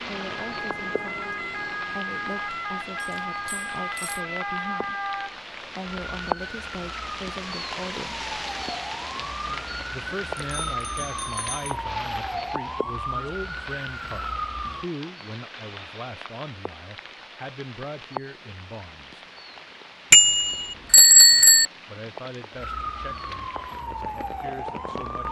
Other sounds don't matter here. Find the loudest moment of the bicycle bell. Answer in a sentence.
The loudest moment of the bicycle bell is at 21 seconds.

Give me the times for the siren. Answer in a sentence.
The siren can be heard from 0.0 to 14.8 s and from 22.6 to 25.2 s.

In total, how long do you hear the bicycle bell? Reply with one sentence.
You can hear the bicycle bell for 4 seconds altogether.